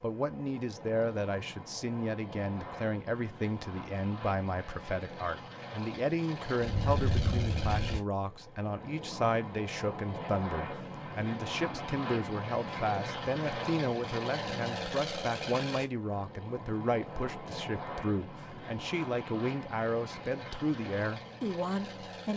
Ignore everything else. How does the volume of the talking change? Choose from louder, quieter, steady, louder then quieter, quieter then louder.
steady.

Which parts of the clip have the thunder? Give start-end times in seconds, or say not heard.
6.6-8.0.